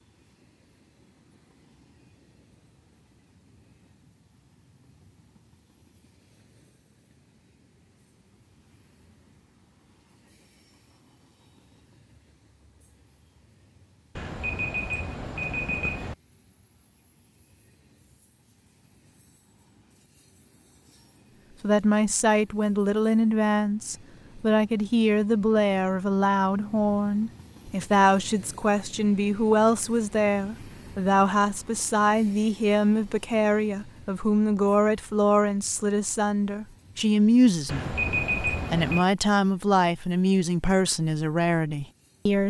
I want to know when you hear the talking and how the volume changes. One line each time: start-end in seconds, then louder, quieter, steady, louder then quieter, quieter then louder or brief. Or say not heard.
21.6-42.4 steady.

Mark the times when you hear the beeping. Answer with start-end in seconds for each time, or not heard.
14.2-16.1, 37.6-39.0.